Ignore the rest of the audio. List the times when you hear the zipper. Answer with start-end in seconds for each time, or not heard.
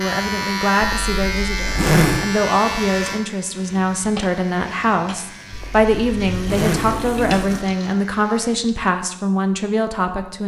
0.8-2.2, 5.5-7.7.